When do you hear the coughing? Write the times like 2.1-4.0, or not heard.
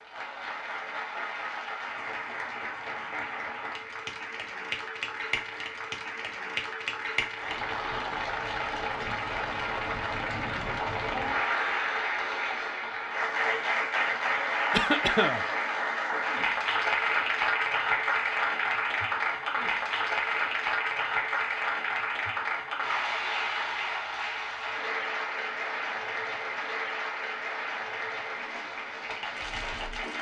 14.7-15.4.